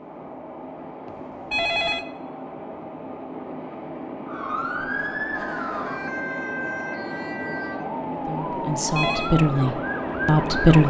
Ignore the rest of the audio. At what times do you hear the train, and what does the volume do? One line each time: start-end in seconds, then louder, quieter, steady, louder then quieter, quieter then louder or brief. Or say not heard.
0.0-10.8 louder.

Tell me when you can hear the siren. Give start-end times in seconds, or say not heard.
4.2-10.8.